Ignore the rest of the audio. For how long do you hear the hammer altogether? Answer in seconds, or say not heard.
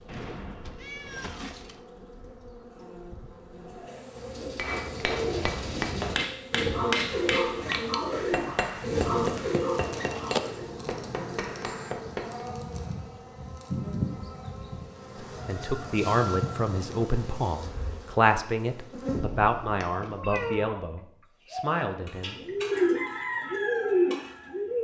8 s.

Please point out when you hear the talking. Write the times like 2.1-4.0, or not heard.
15.4-22.4.